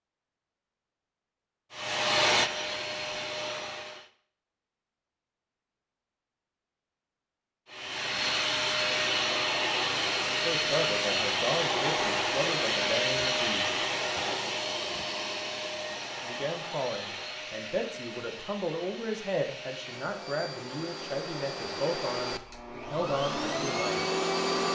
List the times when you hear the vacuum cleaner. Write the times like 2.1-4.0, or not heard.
1.7-4.1, 7.7-24.7.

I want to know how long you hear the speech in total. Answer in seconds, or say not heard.
11 s.